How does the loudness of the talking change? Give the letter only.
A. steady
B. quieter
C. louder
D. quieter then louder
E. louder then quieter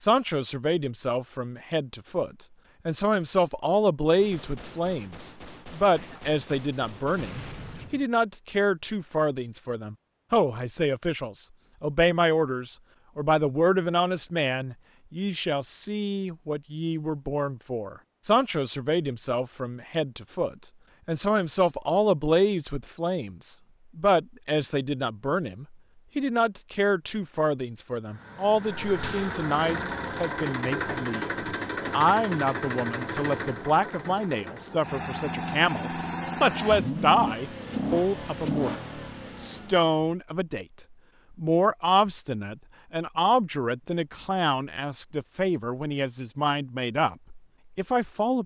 A.